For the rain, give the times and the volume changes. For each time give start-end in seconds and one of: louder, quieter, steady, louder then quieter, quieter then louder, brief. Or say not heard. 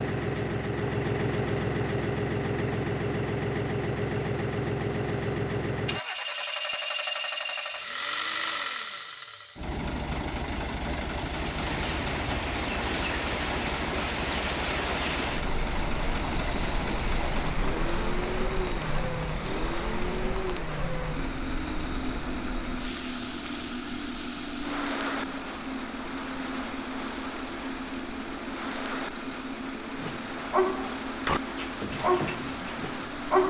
11.2-33.4 quieter.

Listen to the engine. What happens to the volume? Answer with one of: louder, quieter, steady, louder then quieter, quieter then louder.
quieter.